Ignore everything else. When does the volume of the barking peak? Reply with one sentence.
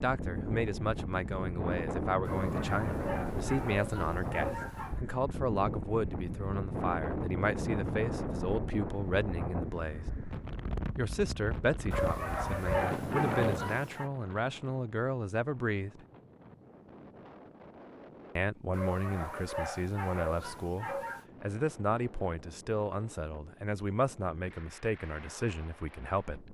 The volume of the barking peaks at 13 seconds.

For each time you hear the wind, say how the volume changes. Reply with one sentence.
The wind can be heard from 0.0 to 26.4 s, getting quieter.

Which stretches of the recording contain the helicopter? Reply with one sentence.
You can't hear the helicopter here.